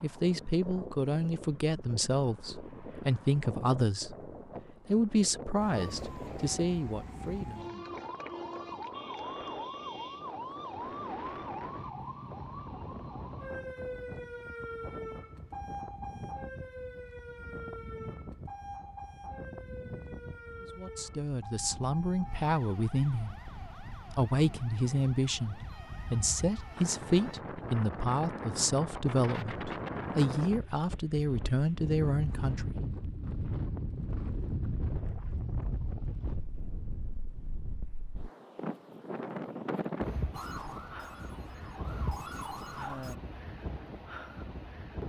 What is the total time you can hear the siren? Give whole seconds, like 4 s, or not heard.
25 s.